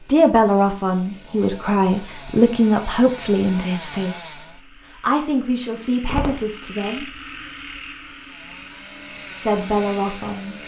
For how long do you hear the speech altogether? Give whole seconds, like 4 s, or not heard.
8 s.